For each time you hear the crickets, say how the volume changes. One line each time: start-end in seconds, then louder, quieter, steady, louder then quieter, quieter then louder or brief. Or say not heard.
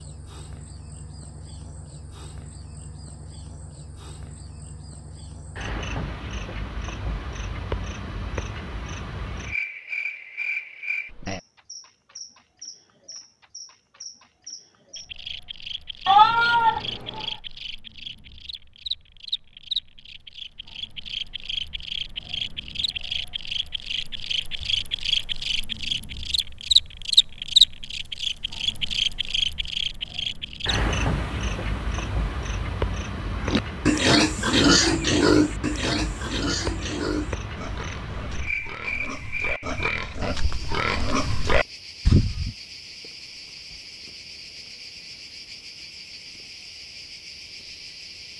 0.0-48.3 louder then quieter.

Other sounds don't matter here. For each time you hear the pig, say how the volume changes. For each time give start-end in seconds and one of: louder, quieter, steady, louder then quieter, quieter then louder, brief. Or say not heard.
33.4-42.5 quieter then louder.